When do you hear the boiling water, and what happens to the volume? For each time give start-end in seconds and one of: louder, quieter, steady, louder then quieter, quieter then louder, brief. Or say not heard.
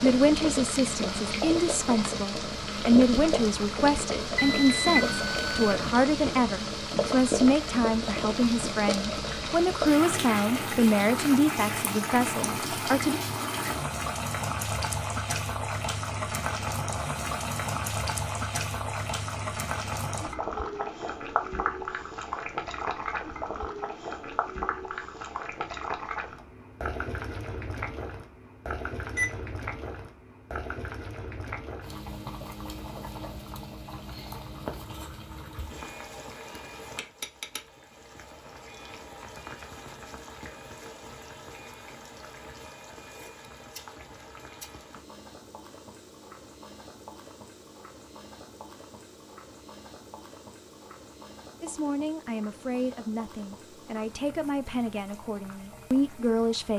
0.0-56.7 quieter.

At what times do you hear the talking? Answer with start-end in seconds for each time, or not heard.
0.0-13.2, 51.6-56.7.